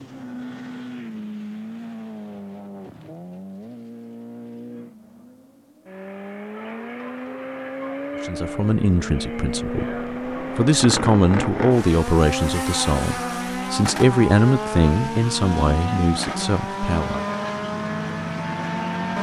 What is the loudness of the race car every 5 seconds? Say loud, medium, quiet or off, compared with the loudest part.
medium, medium, loud, loud.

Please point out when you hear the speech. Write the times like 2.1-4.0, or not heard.
8.2-17.2.